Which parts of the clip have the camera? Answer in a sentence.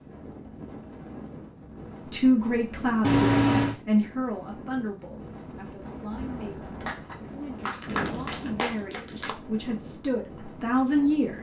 You can hear the camera from 3.0 to 3.8 s and from 6.1 to 7.2 s.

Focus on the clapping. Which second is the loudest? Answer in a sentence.
The volume of the clapping peaks at 8 seconds.